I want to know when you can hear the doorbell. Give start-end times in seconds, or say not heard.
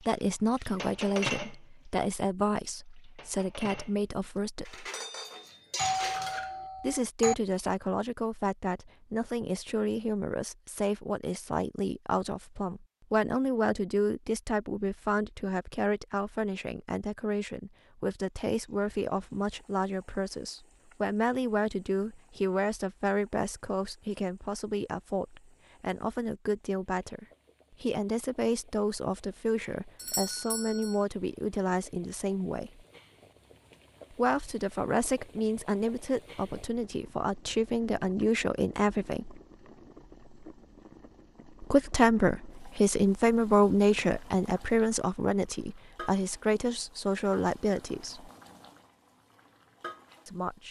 5.8-7.3, 29.9-31.1.